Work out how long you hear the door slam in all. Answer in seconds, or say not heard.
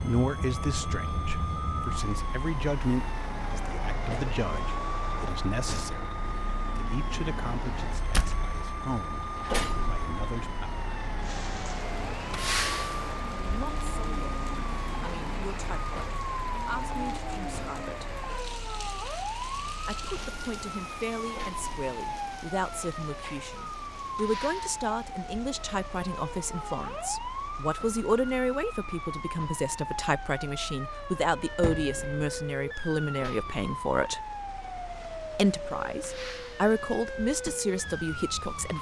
2 s.